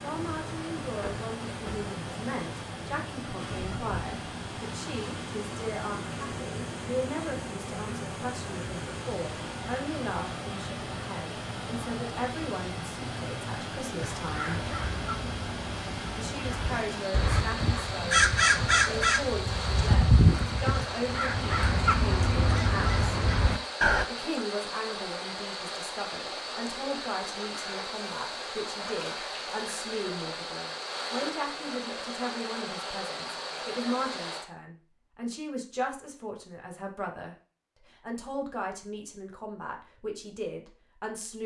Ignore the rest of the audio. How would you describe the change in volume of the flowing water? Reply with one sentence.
The loudness of the flowing water stays about the same.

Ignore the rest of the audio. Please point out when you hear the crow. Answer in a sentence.
You can hear the crow from 14.0 to 24.1 s.